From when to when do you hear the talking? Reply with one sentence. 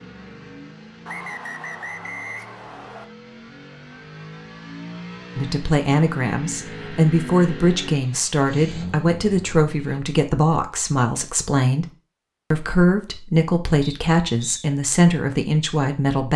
The talking can be heard from 5.3 to 11.9 s and from 12.5 to 16.3 s.